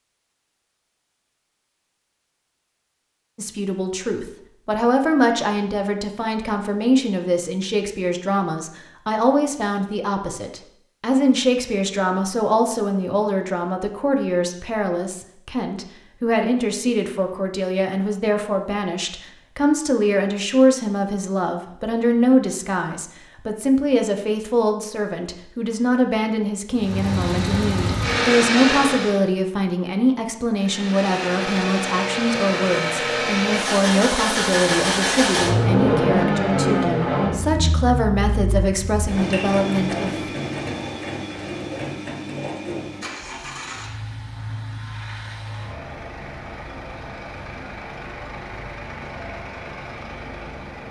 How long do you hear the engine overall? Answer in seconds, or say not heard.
23 s.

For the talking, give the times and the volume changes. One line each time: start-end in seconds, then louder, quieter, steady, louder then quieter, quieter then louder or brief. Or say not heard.
3.4-40.4 steady.